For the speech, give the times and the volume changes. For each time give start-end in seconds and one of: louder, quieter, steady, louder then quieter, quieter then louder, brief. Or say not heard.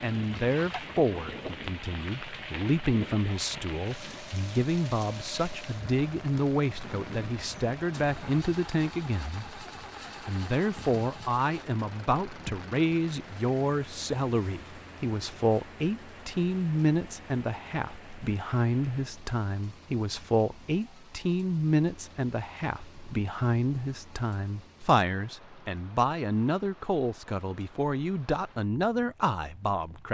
0.0-30.1 steady.